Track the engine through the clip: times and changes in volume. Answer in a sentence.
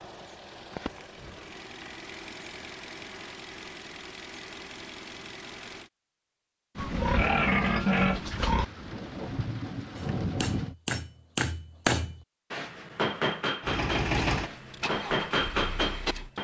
You can hear the engine from 0.0 to 5.9 s, at a steady volume; and briefly from 13.6 to 16.3 s.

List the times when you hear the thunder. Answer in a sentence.
The thunder can be heard from 6.8 to 10.8 s.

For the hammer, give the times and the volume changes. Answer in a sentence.
You can hear the hammer from 9.9 to 16.3 s, getting quieter then louder.